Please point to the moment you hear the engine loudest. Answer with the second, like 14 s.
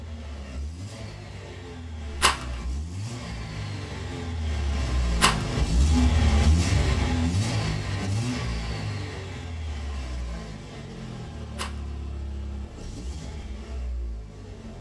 6 s.